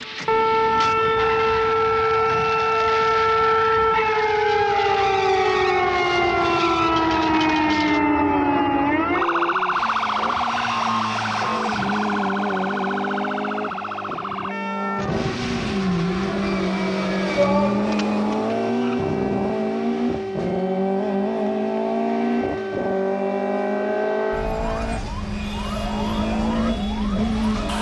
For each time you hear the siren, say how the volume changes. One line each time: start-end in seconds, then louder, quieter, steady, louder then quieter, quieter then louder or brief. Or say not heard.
0.0-27.7 quieter.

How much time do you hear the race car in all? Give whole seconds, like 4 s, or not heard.
28 s.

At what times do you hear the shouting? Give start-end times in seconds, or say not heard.
17.4-17.9.